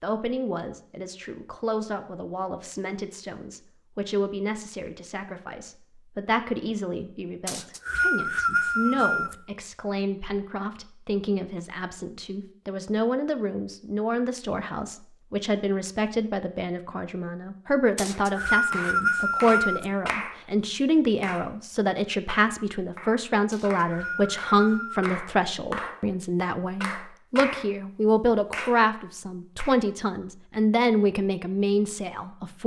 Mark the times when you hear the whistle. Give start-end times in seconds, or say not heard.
7.5-9.3, 17.9-19.9, 23.5-25.1.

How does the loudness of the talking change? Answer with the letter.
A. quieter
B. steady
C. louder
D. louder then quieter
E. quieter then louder
C.